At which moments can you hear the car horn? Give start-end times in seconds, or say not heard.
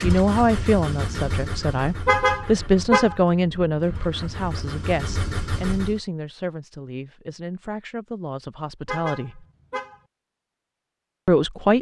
2.0-3.1, 8.8-10.0.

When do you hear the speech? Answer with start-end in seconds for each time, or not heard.
0.0-9.4, 11.2-11.7.